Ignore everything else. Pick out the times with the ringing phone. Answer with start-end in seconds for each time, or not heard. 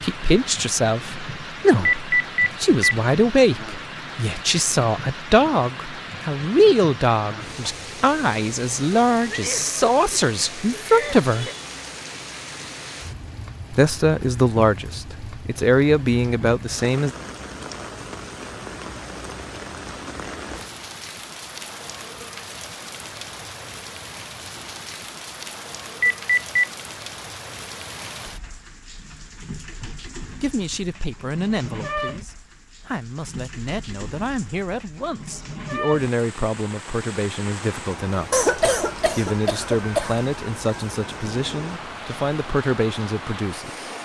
1.9-3.0, 26.0-26.7.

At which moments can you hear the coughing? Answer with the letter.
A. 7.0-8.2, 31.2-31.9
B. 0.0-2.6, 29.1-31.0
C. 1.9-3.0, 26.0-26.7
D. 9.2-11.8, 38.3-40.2
D.